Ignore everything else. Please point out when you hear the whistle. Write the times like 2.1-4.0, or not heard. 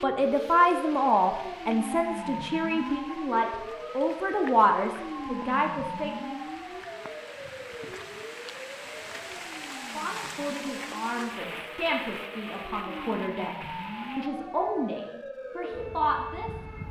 not heard.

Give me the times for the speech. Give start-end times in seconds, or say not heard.
0.0-6.3, 9.8-16.8.